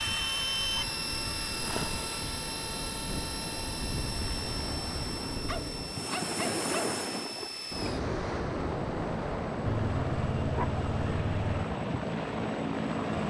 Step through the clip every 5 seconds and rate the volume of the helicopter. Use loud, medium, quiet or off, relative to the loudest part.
loud, medium, loud.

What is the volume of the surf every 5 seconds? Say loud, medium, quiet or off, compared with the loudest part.
medium, loud, medium.